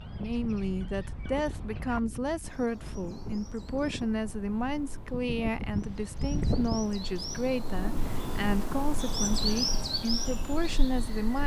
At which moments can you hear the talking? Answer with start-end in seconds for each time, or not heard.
0.1-11.4.